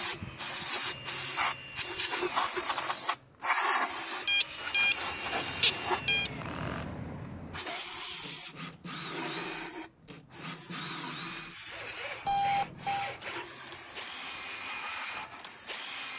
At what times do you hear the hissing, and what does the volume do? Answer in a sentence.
You can hear the hissing from 0.0 to 16.1 s, getting quieter.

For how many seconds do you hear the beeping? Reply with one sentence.
You can hear the beeping for 3 seconds altogether.